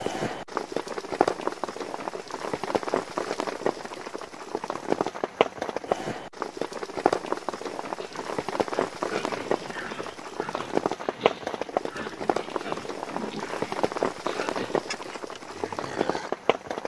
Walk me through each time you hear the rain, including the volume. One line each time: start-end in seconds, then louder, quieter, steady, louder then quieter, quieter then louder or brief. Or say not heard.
0.0-16.8 steady.